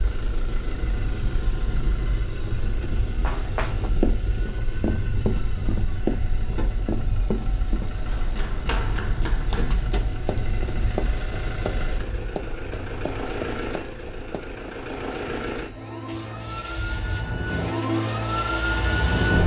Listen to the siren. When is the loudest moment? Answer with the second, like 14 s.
19 s.